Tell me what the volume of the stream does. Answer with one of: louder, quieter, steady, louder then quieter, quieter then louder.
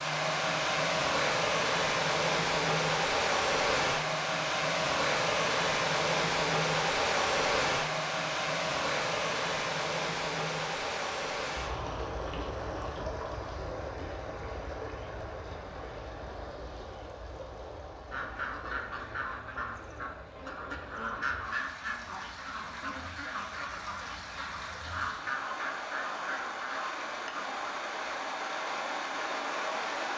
quieter then louder.